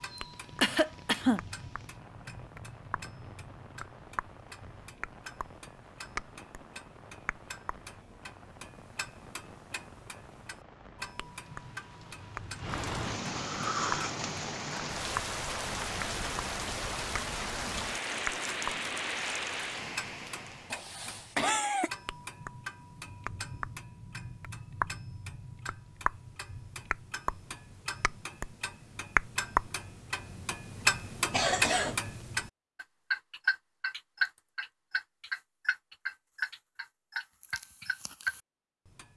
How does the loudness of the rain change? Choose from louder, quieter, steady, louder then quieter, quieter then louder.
louder.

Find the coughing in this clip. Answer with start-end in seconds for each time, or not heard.
0.1-1.4, 20.7-21.9, 31.3-31.9.